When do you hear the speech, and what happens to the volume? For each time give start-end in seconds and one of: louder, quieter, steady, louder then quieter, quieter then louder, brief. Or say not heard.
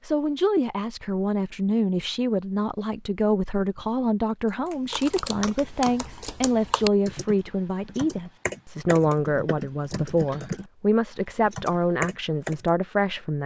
0.0-13.4 steady.